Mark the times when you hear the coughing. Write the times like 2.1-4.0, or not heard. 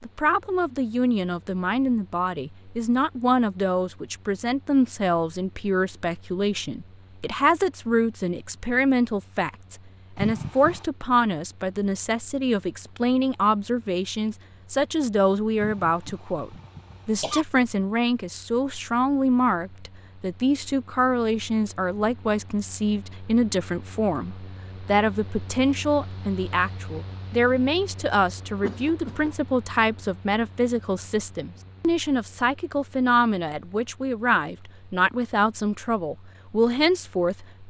10.2-10.8, 15.6-17.4, 28.6-29.4.